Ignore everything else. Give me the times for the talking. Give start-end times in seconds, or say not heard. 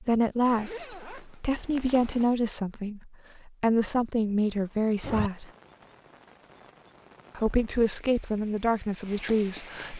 0.0-5.5, 7.3-9.9.